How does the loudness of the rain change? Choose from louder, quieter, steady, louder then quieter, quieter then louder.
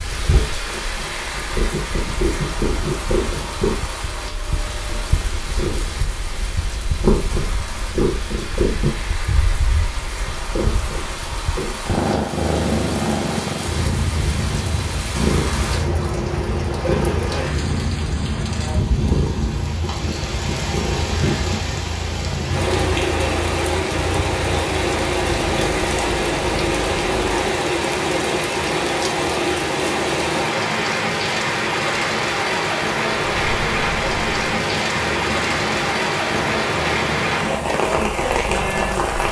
louder.